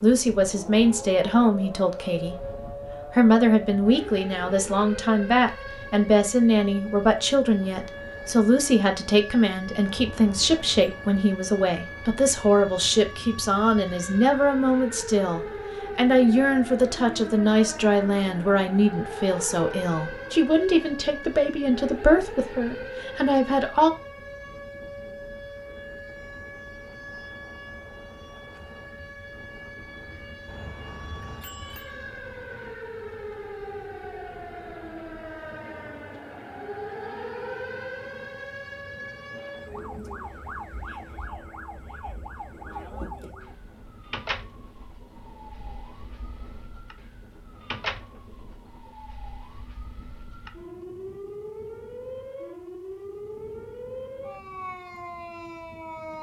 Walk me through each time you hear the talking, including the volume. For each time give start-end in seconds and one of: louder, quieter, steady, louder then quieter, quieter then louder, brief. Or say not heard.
0.0-2.4 brief
3.1-23.9 steady.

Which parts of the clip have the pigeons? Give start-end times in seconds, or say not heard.
not heard.